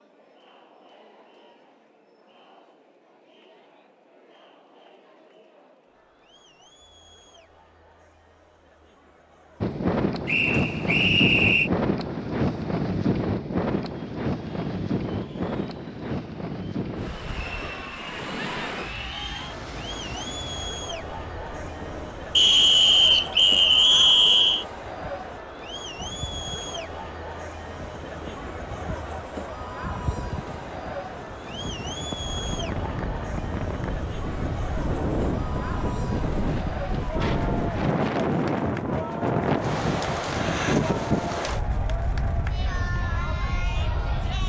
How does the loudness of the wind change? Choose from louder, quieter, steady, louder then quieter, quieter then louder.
quieter then louder.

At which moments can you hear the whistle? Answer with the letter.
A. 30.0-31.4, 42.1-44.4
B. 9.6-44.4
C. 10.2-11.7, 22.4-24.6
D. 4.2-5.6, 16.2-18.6
C.